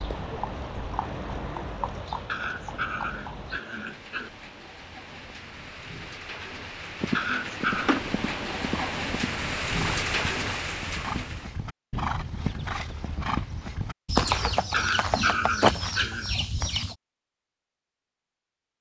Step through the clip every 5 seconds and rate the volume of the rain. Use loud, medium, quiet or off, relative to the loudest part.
quiet, loud, loud, off.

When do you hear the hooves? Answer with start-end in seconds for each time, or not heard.
0.0-3.6, 7.0-15.5.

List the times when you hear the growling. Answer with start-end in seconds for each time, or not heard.
2.2-4.3, 7.2-8.0, 14.7-16.4.